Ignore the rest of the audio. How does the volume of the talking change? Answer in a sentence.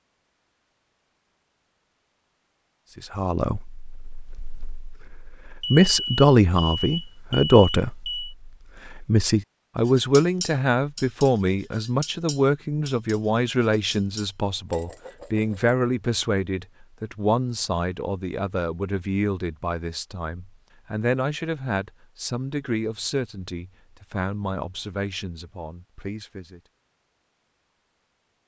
The loudness of the talking goes down.